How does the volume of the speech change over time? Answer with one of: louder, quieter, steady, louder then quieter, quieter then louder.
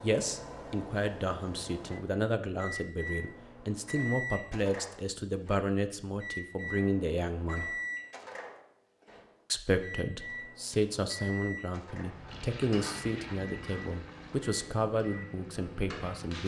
steady.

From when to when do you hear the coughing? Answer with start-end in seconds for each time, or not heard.
not heard.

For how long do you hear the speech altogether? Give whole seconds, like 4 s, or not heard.
15 s.